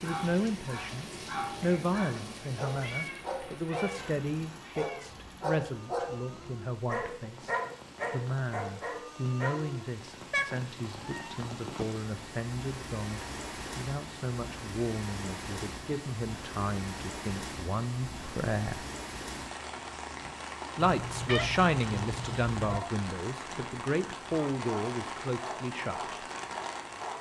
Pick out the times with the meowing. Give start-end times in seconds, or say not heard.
2.8-5.1, 10.3-11.8, 20.8-22.8.